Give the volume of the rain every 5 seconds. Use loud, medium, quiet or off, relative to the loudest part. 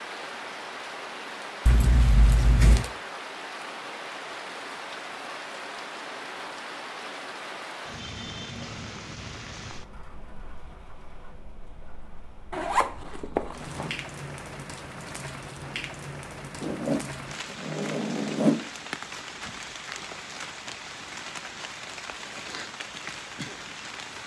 loud, loud, medium, loud, loud.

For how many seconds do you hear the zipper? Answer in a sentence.
The zipper can be heard for 5 seconds in total.